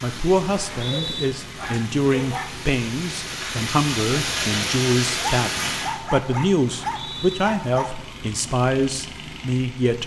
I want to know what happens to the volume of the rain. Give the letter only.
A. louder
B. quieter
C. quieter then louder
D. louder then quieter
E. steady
A.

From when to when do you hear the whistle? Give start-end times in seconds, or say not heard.
0.6-1.3, 6.8-7.4.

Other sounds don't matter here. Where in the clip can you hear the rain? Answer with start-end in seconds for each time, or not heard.
0.0-6.0.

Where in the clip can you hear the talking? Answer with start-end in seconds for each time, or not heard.
0.0-10.0.